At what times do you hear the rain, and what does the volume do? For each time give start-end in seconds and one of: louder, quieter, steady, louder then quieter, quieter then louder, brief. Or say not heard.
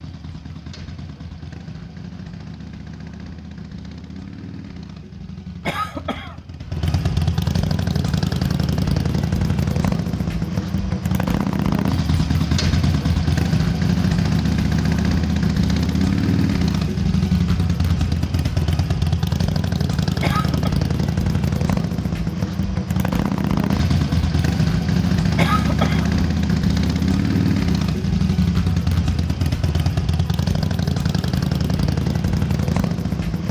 not heard.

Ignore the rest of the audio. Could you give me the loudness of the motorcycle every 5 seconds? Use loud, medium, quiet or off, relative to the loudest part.
quiet, loud, loud, loud, loud, loud, loud.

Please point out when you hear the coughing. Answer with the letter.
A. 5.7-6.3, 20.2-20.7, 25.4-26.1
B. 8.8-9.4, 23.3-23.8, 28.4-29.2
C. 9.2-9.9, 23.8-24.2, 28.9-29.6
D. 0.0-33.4
A.